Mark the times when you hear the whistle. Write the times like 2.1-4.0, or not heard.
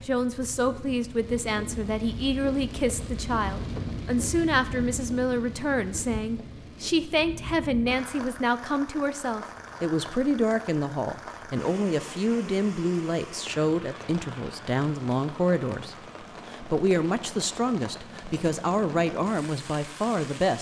not heard.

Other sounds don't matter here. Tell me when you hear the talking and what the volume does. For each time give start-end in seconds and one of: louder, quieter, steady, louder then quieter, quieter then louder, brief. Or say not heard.
0.0-20.5 steady.